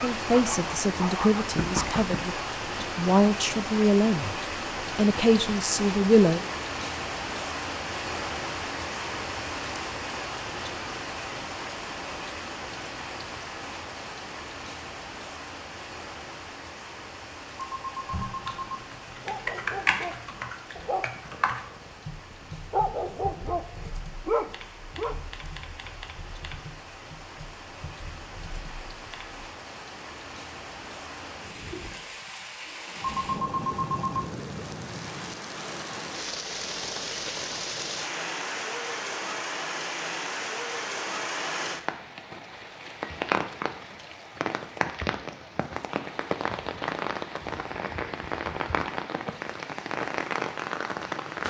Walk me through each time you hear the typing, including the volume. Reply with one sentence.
You can hear the typing from 18.1 to 29.4 s, getting quieter.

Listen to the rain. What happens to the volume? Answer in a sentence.
The volume of the rain goes down, then up.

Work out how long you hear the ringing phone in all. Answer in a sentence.
The ringing phone can be heard for 3 seconds in total.